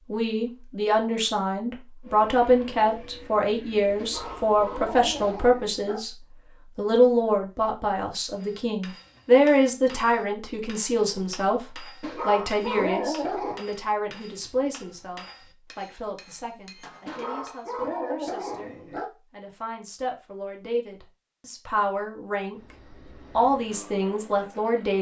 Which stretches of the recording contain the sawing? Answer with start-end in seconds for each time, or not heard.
not heard.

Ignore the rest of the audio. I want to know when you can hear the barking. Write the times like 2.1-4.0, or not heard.
4.0-6.0, 12.0-13.6, 17.1-19.1.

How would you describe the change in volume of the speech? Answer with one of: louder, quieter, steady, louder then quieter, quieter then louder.
quieter then louder.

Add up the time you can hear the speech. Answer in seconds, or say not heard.
24 s.